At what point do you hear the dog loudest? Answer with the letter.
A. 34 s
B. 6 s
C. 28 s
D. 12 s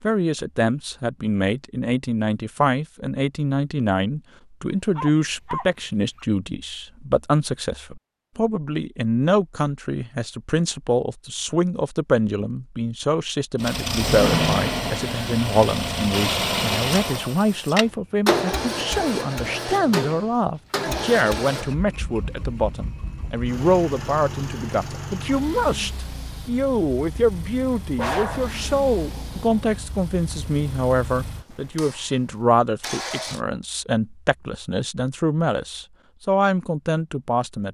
C.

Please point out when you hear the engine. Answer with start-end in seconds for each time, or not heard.
13.6-33.4.